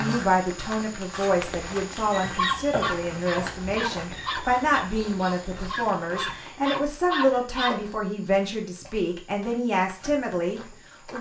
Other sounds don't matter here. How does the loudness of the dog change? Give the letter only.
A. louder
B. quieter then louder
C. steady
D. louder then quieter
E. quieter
B.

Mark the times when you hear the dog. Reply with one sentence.
The dog can be heard from 2.1 to 7.8 s.